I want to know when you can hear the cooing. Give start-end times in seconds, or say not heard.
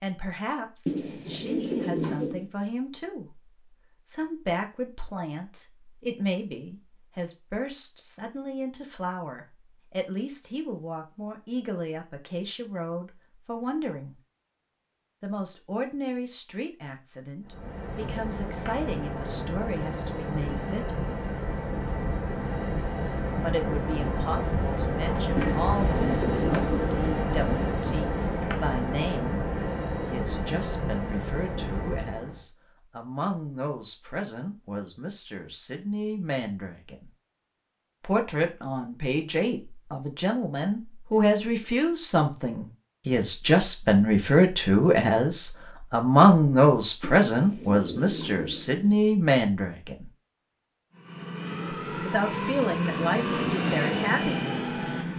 0.8-2.5, 25.4-26.9, 47.0-49.0.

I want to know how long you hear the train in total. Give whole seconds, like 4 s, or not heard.
19 s.